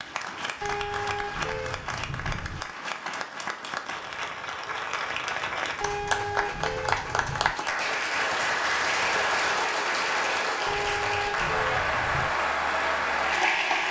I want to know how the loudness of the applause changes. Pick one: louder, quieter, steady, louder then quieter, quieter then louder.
louder.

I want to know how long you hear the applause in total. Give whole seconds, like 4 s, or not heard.
14 s.